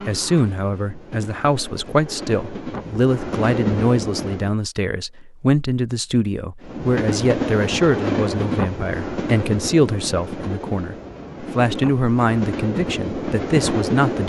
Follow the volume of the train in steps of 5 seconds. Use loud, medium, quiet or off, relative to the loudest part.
medium, loud, loud.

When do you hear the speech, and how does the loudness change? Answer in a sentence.
The speech can be heard from 0.1 to 14.2 s, at a steady volume.